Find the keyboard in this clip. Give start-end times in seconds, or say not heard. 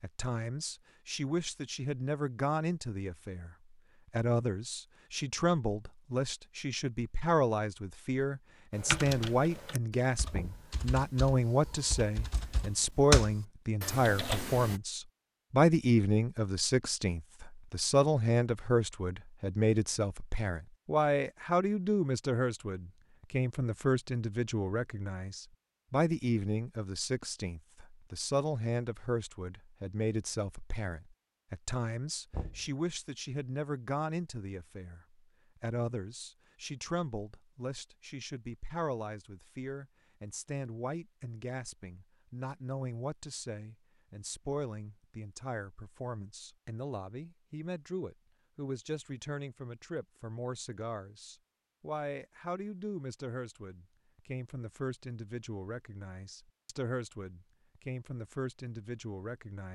8.8-14.8.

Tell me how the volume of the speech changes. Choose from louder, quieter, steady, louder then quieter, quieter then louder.
quieter.